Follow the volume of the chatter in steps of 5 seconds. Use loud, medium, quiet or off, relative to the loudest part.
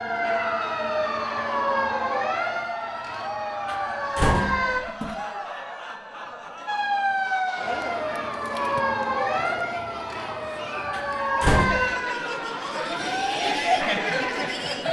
medium, medium, loud.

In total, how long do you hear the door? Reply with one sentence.
The door can be heard for 2 seconds in total.